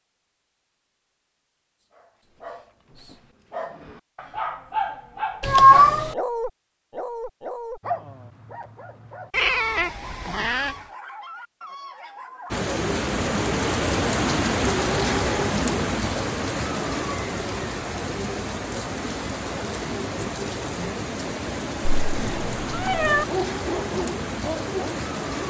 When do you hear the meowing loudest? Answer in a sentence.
The volume of the meowing peaks at 6 seconds.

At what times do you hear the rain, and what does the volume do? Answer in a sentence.
The rain can be heard from 12.5 to 25.4 s, getting quieter.